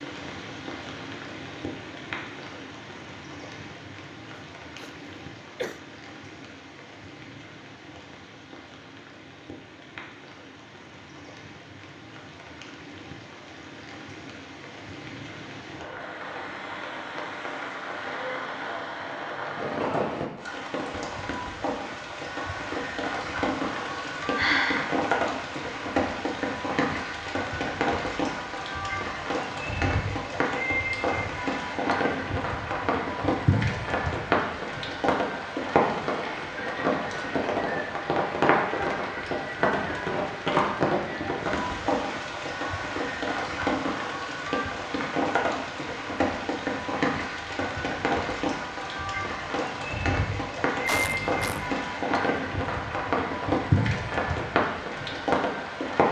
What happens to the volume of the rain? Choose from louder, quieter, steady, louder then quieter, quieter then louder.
louder.